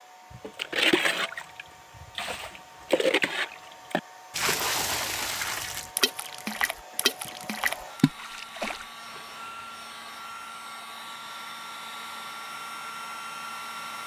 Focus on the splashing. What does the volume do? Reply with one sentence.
The loudness of the splashing goes down.